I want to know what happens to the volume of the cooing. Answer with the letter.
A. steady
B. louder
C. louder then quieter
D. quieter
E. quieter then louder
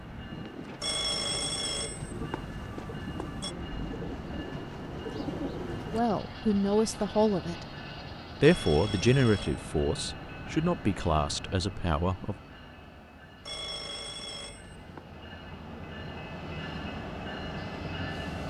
B.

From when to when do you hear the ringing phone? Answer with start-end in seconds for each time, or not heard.
0.8-3.5, 8.4-9.7, 13.4-15.0.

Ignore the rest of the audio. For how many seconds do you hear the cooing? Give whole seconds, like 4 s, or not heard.
6 s.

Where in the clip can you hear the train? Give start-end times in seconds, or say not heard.
0.0-18.4.